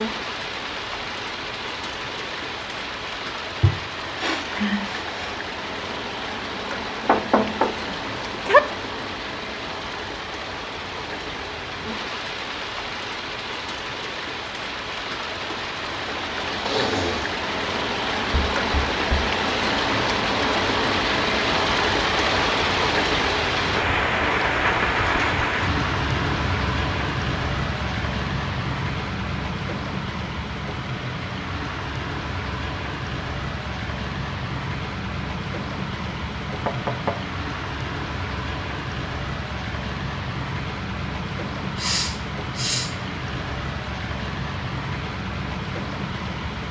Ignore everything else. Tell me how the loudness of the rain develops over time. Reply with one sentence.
The loudness of the rain goes up, then down.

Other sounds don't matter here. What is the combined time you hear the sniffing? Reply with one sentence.
The sniffing can be heard for 4 seconds in total.